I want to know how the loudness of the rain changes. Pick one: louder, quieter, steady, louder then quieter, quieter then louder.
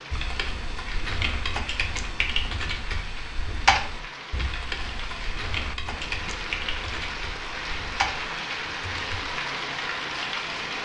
louder.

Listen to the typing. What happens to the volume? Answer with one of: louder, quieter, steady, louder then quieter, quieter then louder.
louder then quieter.